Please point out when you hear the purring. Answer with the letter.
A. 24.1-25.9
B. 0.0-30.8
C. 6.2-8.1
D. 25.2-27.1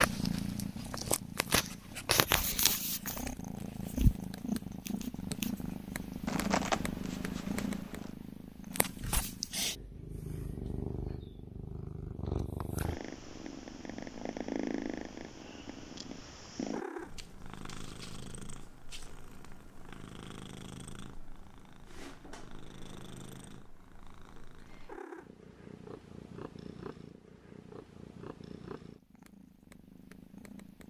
B.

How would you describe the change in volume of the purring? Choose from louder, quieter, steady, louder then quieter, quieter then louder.
quieter.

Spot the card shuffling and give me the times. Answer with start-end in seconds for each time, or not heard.
6.2-8.1.